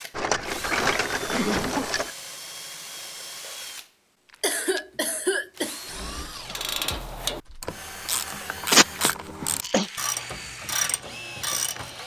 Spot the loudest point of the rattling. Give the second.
1 s.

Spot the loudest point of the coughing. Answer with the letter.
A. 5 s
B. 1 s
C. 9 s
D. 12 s
C.